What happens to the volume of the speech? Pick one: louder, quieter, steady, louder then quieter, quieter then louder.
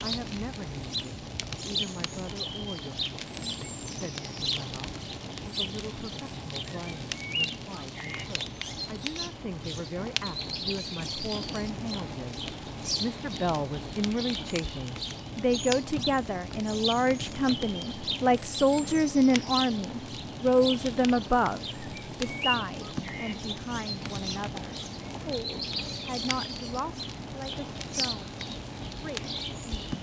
louder then quieter.